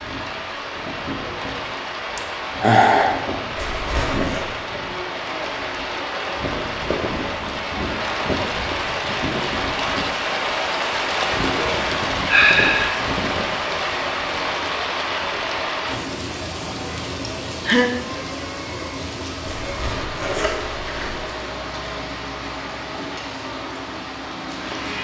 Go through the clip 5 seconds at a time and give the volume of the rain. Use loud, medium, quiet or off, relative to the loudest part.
medium, loud, loud, medium, medium.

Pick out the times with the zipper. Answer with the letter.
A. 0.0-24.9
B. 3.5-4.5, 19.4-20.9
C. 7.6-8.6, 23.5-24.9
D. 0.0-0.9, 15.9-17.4
B.